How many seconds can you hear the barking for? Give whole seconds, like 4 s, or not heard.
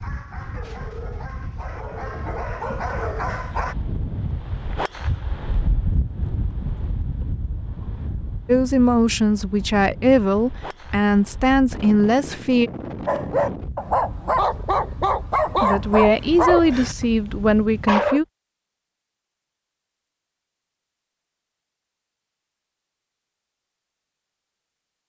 9 s.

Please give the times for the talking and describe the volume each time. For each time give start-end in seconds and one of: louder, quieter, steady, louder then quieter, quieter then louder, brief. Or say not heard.
8.4-12.7 steady
15.6-18.2 brief.